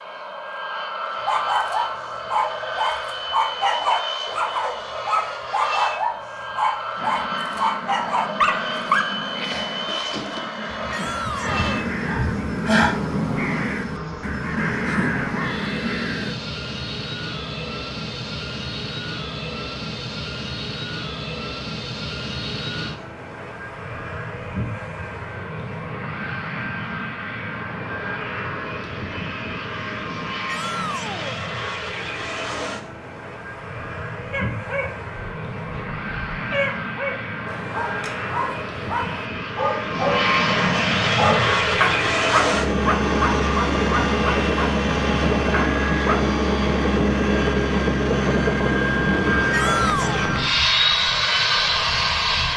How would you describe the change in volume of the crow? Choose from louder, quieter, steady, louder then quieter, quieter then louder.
louder.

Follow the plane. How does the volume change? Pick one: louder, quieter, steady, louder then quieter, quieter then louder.
louder.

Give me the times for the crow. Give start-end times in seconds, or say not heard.
7.0-16.4.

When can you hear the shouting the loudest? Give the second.
50 s.